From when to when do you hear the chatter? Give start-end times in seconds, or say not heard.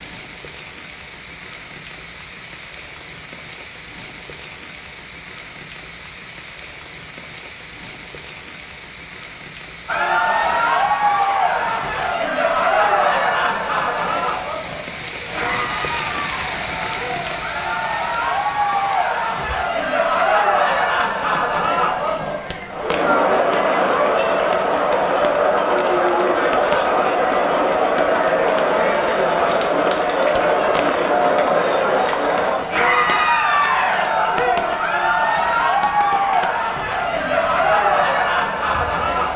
9.8-39.3.